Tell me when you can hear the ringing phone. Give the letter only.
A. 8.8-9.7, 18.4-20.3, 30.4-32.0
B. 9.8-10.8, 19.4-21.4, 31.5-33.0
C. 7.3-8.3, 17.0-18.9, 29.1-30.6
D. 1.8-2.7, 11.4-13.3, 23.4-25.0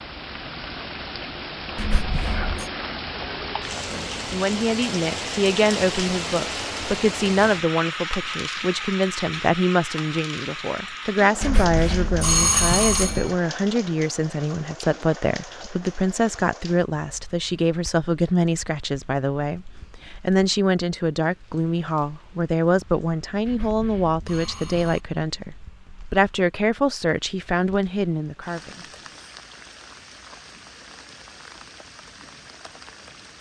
D.